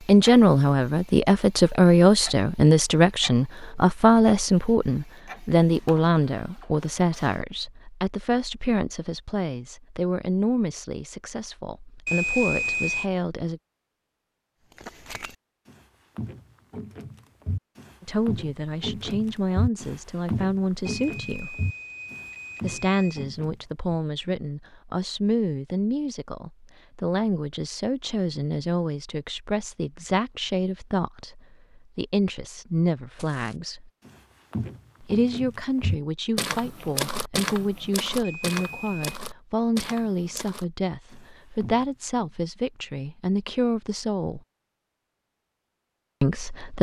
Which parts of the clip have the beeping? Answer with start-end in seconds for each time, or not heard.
12.1-13.1, 20.9-23.2, 38.2-39.2.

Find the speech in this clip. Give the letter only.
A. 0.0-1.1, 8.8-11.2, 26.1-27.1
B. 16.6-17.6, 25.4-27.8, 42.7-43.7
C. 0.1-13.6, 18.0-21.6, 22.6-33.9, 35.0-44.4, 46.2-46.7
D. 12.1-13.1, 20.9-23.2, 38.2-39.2
C.